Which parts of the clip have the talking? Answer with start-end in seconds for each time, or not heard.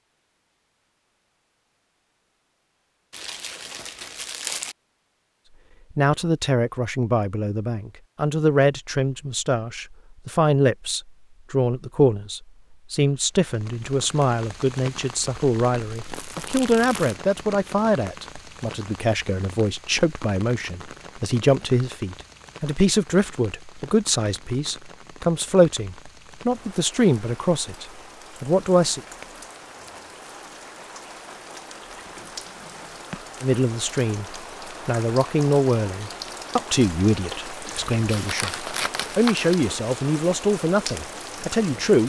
6.0-29.0, 33.4-34.2, 34.9-42.0.